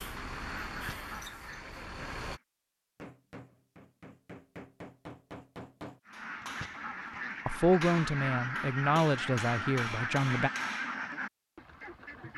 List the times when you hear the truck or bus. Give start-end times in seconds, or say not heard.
0.0-2.4.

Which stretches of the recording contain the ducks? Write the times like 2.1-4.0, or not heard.
0.0-2.4, 6.0-12.3.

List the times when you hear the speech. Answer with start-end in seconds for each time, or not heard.
7.5-10.5.